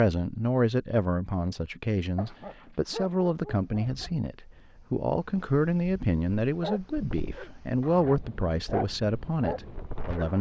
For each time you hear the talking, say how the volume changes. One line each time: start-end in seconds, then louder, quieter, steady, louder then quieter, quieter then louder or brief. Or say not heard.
0.0-10.3 steady.